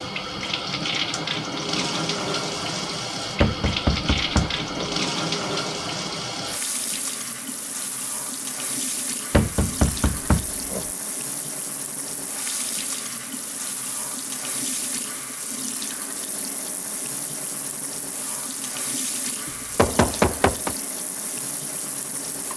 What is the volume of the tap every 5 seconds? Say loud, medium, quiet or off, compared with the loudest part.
loud, loud, medium, medium, medium.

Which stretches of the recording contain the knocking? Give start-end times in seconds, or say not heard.
3.4-5.0, 9.3-10.9, 19.4-20.8.